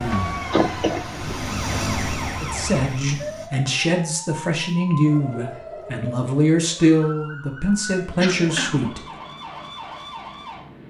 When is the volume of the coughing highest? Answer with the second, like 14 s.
1 s.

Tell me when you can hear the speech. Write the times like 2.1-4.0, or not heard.
2.4-9.0.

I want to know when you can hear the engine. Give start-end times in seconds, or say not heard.
0.2-3.5.